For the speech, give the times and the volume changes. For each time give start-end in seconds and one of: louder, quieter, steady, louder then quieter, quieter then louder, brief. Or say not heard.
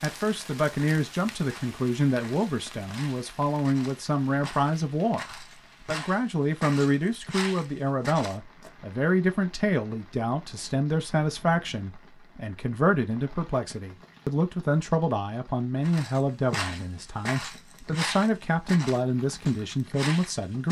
0.0-20.6 steady.